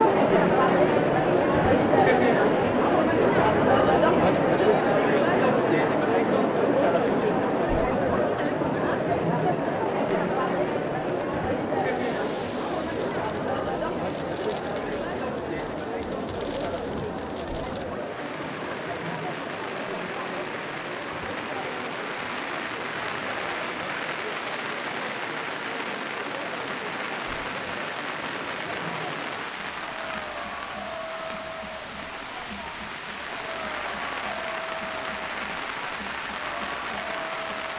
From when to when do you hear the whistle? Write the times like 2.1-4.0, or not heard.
not heard.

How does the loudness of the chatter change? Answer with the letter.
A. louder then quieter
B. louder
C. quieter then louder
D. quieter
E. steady
D.